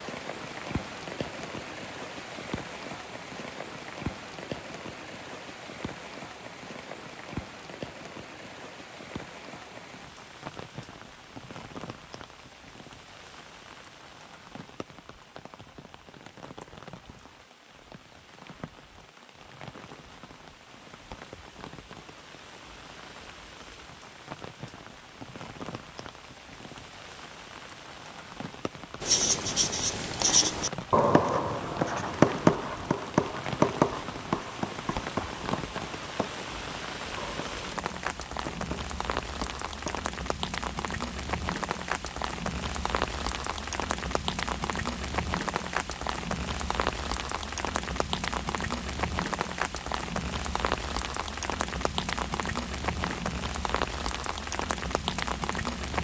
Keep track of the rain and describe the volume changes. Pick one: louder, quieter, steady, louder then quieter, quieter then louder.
quieter then louder.